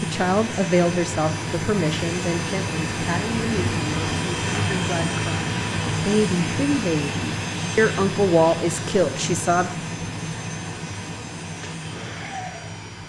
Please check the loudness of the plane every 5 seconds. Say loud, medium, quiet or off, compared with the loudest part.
loud, loud, medium.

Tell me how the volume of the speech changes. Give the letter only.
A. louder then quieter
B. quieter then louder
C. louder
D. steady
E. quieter
B.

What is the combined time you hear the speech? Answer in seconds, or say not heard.
10 s.